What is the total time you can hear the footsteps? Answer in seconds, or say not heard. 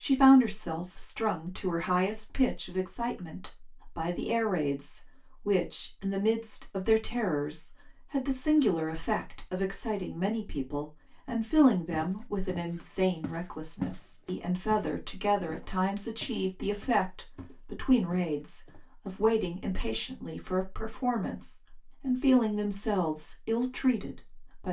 6 s.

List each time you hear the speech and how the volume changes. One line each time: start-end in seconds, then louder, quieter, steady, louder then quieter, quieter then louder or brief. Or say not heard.
0.0-24.6 steady.